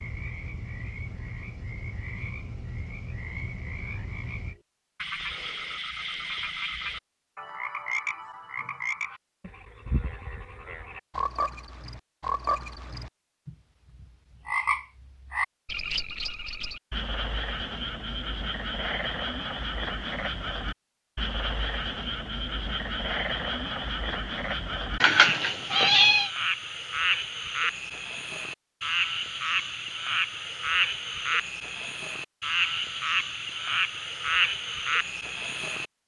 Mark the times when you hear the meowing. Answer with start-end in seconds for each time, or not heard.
25.0-26.3.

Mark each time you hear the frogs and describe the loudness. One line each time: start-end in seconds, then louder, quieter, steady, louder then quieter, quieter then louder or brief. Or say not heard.
0.0-35.9 louder.